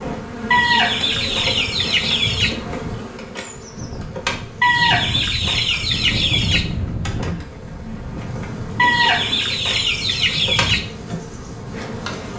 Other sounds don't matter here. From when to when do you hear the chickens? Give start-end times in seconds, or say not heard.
0.5-2.5, 4.6-6.7, 8.8-10.8.